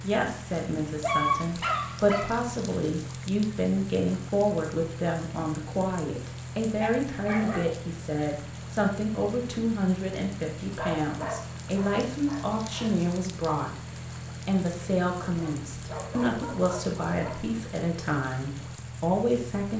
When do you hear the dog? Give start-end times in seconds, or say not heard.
1.0-2.4, 6.7-7.8, 10.8-12.9, 15.2-17.4.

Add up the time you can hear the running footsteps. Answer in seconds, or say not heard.
not heard.